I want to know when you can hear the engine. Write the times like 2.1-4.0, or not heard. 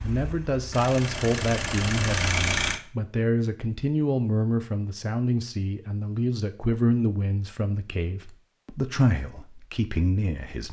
0.0-2.8.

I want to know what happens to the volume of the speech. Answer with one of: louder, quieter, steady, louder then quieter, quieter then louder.
steady.